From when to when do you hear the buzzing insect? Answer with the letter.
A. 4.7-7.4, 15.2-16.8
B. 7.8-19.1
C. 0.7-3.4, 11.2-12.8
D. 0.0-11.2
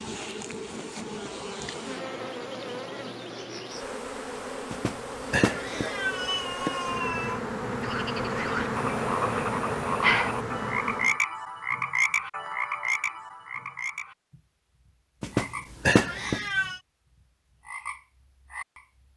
D.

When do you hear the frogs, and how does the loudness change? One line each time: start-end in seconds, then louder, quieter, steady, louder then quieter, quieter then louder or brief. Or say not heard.
7.8-19.1 quieter.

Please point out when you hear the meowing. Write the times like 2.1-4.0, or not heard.
4.7-7.4, 15.2-16.8.